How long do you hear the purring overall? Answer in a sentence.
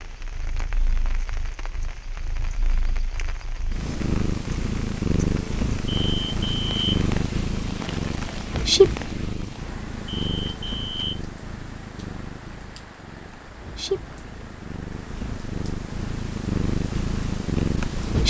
The purring can be heard for 18 seconds in total.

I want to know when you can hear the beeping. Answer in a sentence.
The beeping can be heard from 5.9 to 7.0 s and from 10.1 to 11.2 s.